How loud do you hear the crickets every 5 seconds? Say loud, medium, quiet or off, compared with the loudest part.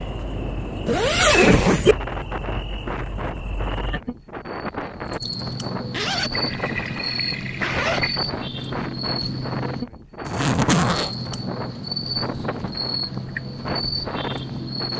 medium, loud, loud.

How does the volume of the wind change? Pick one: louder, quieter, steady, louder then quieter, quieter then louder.
steady.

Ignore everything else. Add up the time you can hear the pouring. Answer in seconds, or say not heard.
2 s.